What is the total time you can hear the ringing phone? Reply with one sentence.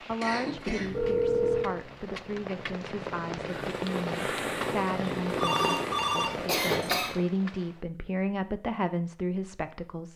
You can hear the ringing phone for 3 seconds altogether.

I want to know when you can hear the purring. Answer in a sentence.
The purring can be heard from 3.5 to 6.8 s.